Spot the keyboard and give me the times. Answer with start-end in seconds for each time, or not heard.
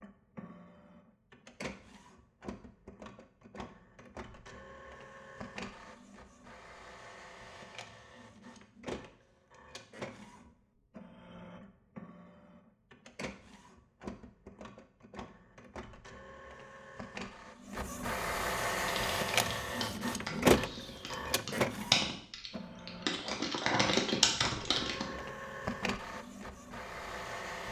18.8-25.2.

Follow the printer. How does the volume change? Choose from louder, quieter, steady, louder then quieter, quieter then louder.
louder then quieter.